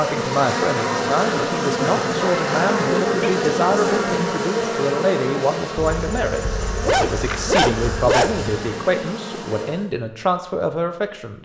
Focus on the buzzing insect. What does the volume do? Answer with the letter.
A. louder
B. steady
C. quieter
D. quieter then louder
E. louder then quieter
C.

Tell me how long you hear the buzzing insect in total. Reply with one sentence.
The buzzing insect can be heard for 10 seconds in total.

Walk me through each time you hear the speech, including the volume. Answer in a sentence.
You can hear the speech from 0.0 to 11.3 s, at a steady volume.